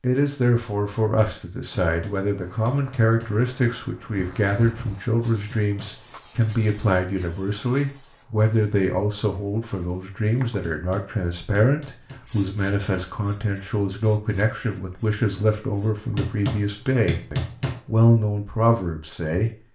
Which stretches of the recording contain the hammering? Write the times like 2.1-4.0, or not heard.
1.9-3.4, 5.5-7.2, 10.6-12.2, 16.1-17.8.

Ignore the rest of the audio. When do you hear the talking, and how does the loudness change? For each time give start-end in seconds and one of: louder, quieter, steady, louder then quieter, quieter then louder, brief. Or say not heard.
0.0-19.5 steady.